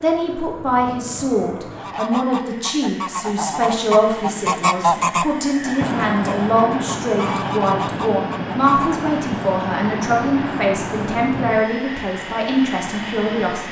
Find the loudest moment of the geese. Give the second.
5 s.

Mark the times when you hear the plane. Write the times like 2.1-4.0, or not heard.
0.0-13.6.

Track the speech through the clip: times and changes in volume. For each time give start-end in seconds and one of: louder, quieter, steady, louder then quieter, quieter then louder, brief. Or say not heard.
0.0-13.6 steady.